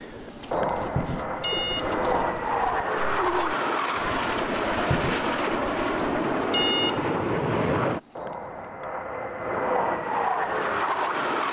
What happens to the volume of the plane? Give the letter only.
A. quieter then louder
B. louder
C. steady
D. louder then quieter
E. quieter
C.